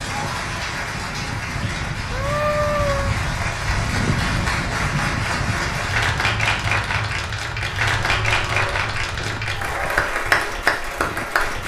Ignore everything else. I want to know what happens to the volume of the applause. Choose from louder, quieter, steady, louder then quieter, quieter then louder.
louder.